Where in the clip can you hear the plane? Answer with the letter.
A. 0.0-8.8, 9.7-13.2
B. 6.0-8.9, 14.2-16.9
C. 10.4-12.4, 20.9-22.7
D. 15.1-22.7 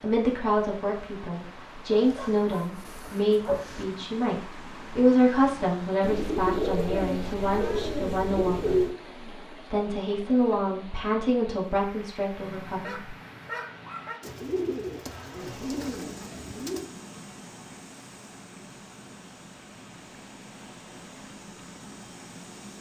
D.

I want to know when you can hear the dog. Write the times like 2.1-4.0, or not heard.
1.9-3.9, 12.3-14.2.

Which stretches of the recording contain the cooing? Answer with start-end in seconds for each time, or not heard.
6.0-8.9, 14.2-16.9.